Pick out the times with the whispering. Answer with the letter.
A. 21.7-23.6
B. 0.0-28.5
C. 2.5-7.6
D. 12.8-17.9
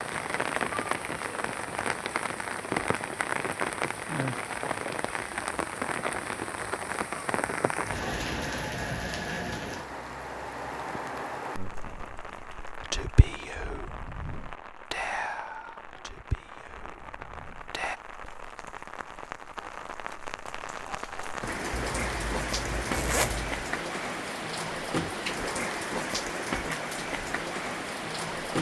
D.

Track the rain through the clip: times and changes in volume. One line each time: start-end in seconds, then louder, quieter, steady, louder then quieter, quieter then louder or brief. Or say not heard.
0.0-28.5 quieter then louder.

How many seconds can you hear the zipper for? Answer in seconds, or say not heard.
2 s.